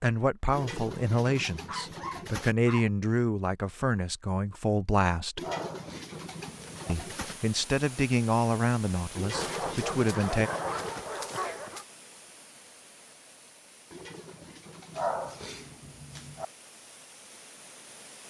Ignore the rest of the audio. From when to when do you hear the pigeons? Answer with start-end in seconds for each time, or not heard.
0.5-2.5, 5.3-7.4, 9.2-11.1, 13.9-15.2.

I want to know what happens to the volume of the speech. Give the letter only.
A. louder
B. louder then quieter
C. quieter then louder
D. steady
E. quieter
D.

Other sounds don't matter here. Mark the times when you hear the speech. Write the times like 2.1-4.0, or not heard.
0.0-5.4, 6.8-10.5.